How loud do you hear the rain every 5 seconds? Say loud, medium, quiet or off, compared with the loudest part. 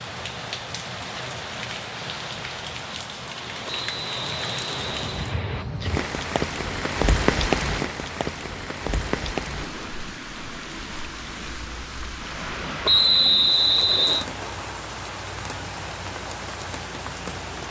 medium, loud, medium, medium.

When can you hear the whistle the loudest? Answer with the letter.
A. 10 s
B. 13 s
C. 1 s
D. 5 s
B.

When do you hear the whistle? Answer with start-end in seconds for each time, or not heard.
3.6-5.7, 12.8-14.2.